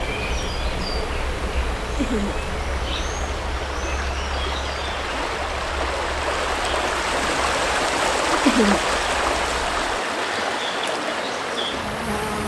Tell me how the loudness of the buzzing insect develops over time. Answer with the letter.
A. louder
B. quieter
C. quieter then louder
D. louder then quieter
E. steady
C.